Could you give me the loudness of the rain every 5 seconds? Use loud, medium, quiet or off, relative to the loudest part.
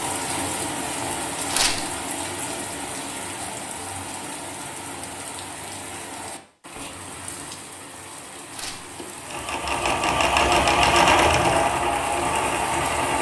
loud, medium, loud.